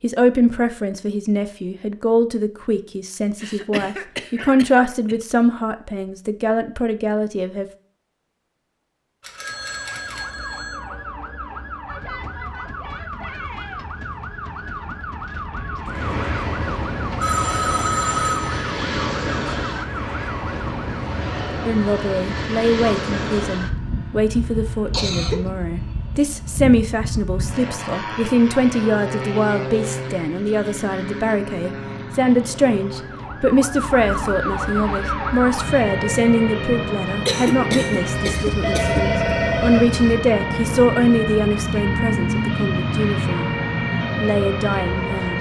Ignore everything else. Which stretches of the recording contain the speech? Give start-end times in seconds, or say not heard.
0.0-7.7, 21.6-43.5, 44.2-45.3.